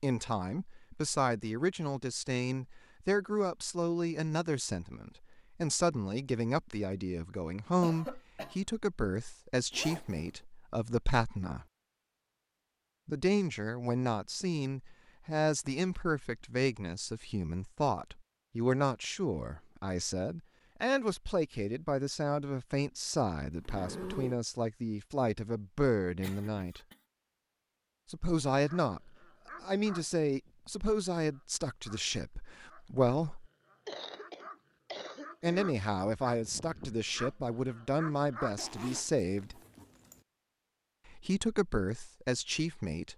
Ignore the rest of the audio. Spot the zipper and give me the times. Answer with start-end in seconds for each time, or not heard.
9.7-10.3, 23.5-24.4, 38.5-40.2.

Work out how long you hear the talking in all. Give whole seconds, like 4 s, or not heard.
37 s.